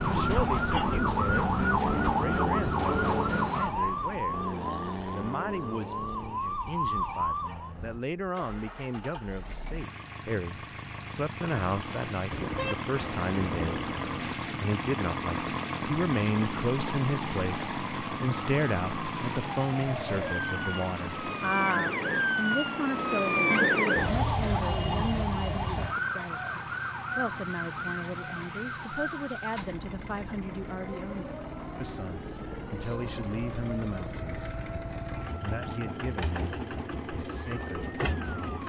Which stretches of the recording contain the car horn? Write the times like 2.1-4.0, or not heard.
12.3-14.3.